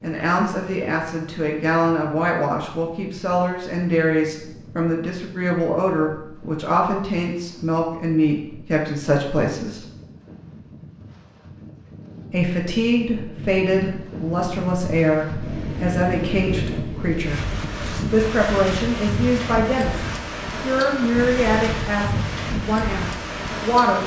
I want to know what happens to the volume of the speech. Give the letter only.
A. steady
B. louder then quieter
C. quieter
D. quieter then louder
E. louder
A.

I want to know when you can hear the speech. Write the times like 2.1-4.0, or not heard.
0.0-9.8, 12.3-17.4, 18.1-24.0.